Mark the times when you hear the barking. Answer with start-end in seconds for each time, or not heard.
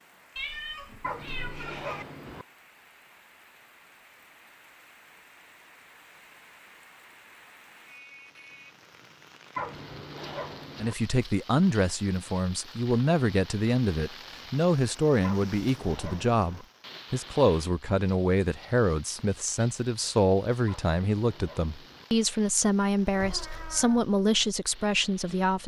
1.0-2.5, 9.6-10.9, 15.2-16.6, 20.6-22.1.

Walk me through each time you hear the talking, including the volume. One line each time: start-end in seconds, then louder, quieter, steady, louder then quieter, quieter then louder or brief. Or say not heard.
10.8-25.6 steady.